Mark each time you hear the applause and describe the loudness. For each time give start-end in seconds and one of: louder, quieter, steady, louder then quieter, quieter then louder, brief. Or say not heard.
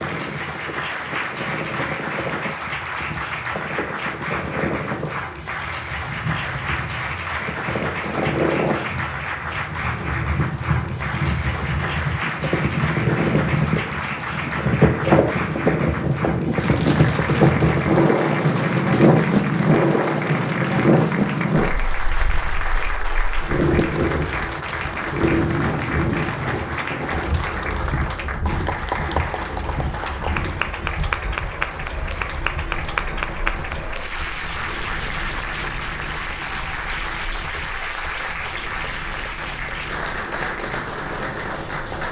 0.0-42.0 steady.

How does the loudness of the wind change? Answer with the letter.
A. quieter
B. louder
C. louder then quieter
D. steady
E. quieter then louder
C.